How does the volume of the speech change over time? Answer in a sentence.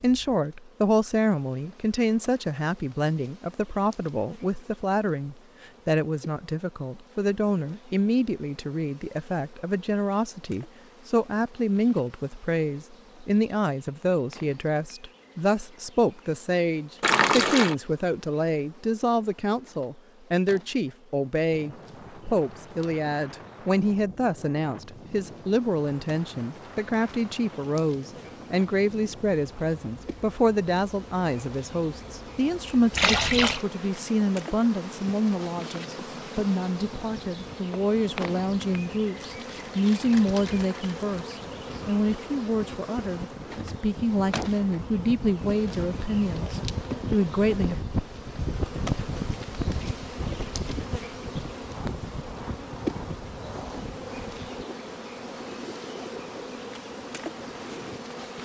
The loudness of the speech stays about the same.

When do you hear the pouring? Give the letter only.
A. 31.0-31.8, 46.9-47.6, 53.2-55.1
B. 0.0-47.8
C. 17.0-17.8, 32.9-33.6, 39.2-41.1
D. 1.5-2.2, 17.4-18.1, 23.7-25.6
C.